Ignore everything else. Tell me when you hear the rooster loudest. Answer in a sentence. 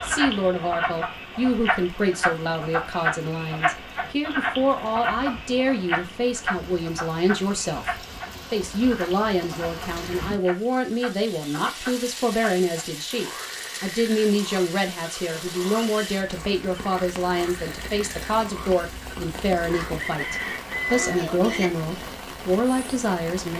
The volume of the rooster peaks at 21 seconds.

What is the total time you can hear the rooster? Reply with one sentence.
You can hear the rooster for 2 seconds altogether.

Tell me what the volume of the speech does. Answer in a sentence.
The volume of the speech stays about the same.